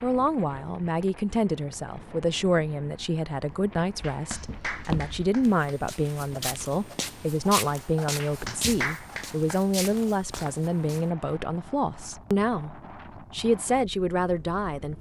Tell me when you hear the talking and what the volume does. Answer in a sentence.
The talking can be heard from 0.0 to 14.9 s, at a steady volume.